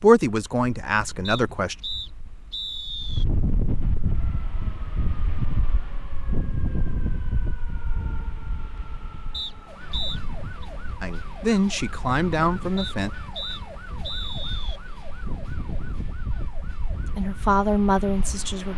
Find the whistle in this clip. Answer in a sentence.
The whistle can be heard from 1.2 to 3.2 s, from 9.3 to 10.7 s and from 12.8 to 14.8 s.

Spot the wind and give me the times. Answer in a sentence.
The wind can be heard from 0.2 to 18.7 s.